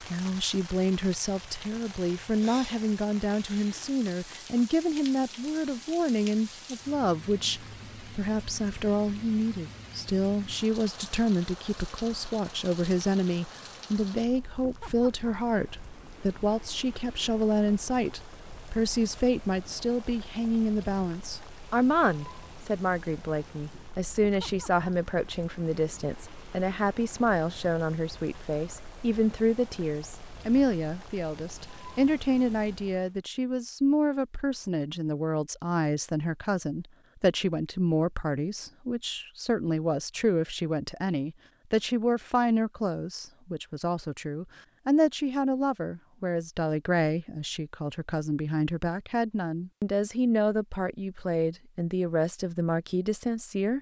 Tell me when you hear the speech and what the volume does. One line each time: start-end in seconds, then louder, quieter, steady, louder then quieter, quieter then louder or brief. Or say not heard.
0.0-53.7 steady.